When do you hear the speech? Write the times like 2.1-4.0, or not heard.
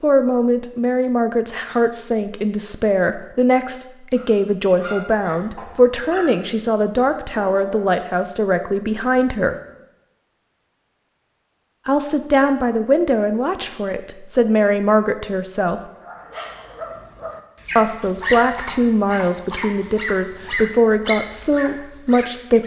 0.0-9.6, 11.8-15.8, 17.8-22.6.